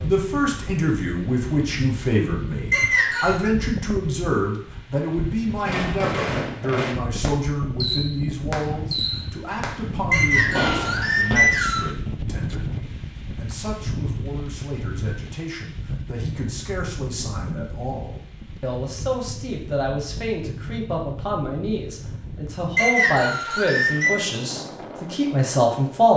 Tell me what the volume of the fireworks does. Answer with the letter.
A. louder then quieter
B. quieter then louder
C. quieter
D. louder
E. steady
E.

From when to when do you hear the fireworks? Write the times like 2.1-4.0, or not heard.
5.6-11.3.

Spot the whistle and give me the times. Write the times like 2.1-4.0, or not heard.
2.7-3.4, 10.1-11.9, 22.8-24.2.